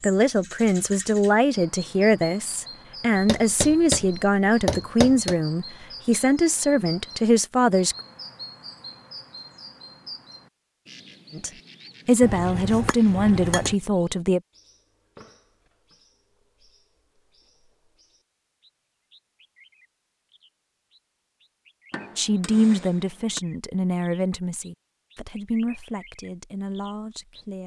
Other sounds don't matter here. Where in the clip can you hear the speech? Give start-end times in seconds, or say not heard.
0.0-8.0, 11.3-14.4, 22.1-27.6.